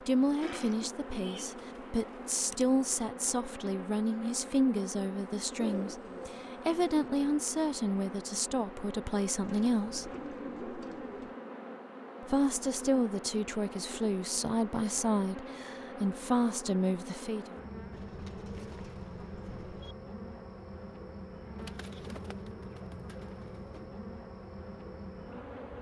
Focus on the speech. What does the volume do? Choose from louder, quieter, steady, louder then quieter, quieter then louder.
steady.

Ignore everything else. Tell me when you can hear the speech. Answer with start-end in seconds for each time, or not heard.
0.1-10.1, 12.2-17.6.